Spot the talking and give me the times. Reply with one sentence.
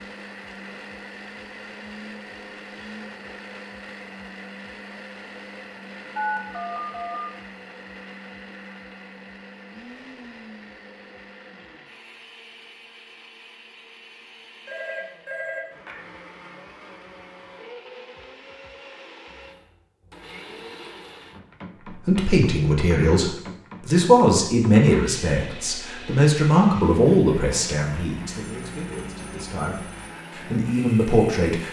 The talking can be heard from 21.9 to 31.6 s.